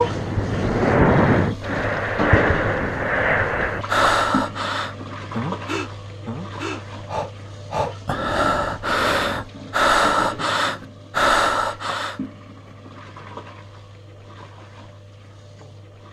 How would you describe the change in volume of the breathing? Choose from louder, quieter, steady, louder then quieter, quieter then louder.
quieter then louder.